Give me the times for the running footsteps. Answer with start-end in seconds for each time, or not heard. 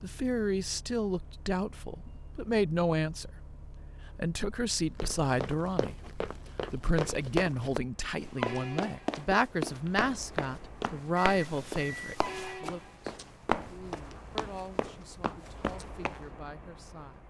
5.0-16.2.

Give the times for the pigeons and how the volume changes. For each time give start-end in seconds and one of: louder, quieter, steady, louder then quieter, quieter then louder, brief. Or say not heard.
not heard.